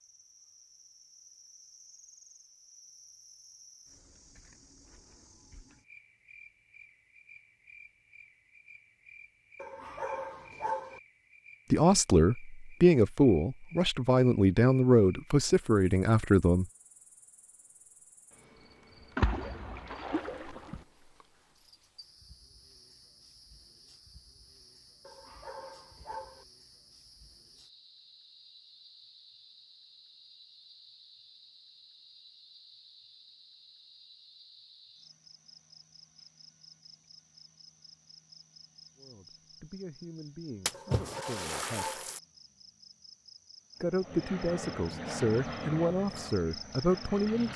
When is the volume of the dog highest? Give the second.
11 s.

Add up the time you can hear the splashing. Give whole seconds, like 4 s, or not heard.
3 s.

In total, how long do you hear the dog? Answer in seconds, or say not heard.
4 s.